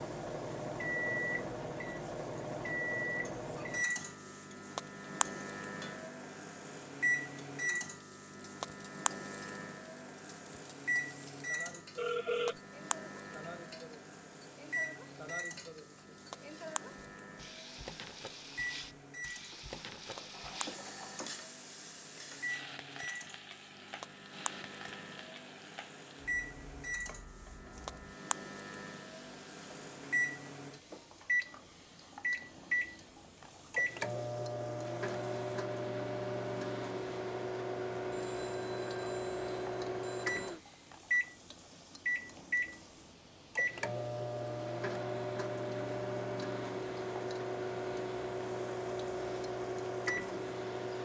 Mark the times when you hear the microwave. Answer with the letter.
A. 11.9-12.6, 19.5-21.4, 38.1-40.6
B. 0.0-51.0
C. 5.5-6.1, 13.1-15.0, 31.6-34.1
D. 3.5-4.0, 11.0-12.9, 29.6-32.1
B.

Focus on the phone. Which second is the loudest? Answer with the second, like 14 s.
12 s.